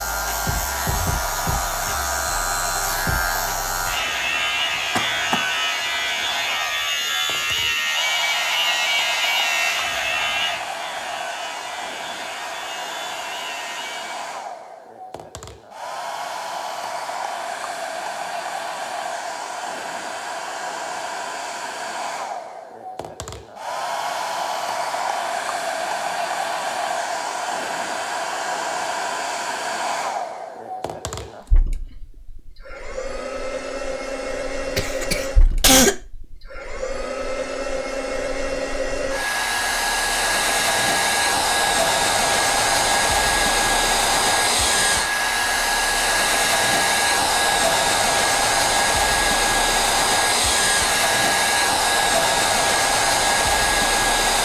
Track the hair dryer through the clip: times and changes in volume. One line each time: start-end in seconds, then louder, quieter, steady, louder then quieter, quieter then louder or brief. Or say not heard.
0.0-54.4 louder.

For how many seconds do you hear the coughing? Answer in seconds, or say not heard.
2 s.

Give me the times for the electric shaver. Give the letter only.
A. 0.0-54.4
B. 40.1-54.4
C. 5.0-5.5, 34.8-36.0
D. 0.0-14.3
D.